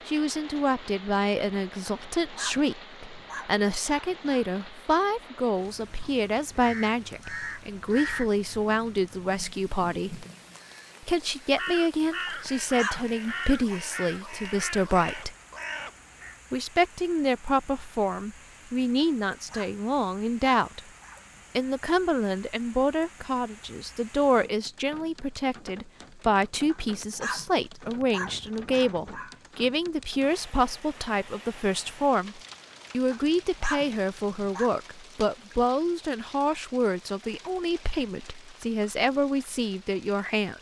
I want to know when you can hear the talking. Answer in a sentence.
The talking can be heard from 0.1 to 10.2 s, from 11.0 to 15.3 s, from 16.5 to 20.8 s and from 21.6 to 40.5 s.